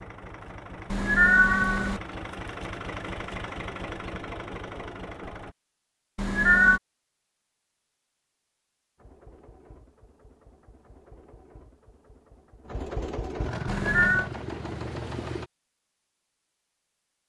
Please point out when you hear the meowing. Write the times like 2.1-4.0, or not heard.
0.9-2.0, 6.2-6.8, 13.7-14.3.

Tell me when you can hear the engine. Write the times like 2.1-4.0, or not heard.
0.0-5.5, 8.9-15.5.